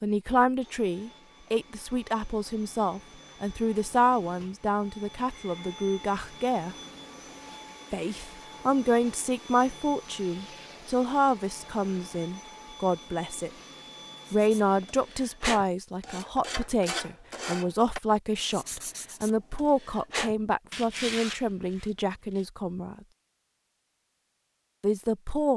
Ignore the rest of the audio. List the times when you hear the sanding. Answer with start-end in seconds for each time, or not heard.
14.2-22.4.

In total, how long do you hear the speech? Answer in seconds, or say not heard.
22 s.